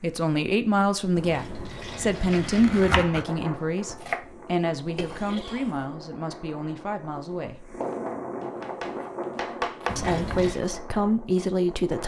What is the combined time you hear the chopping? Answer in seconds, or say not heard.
4 s.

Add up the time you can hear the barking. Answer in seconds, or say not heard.
not heard.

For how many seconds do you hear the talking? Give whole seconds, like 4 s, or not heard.
10 s.